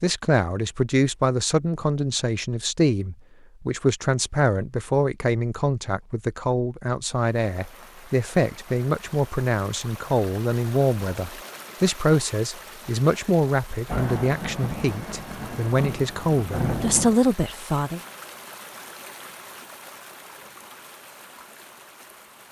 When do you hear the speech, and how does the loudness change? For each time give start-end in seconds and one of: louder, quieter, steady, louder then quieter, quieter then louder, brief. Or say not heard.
0.0-18.0 steady.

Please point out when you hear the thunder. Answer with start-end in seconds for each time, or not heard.
13.8-17.1.